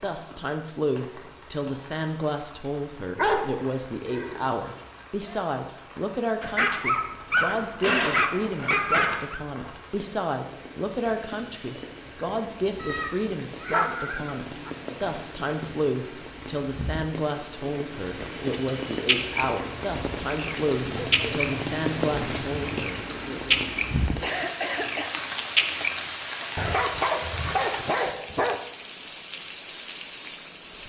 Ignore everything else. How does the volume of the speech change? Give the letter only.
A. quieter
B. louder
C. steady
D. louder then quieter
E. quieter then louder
C.